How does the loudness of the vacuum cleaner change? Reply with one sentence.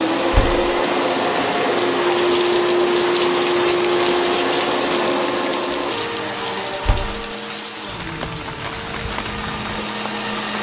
The loudness of the vacuum cleaner goes down.